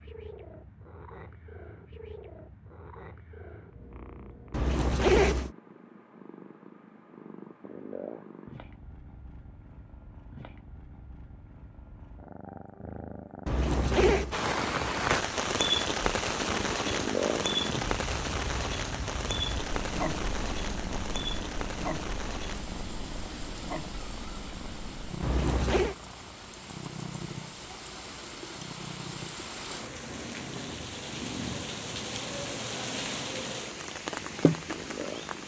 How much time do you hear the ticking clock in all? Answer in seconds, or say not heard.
not heard.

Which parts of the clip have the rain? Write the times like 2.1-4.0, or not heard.
14.3-35.4.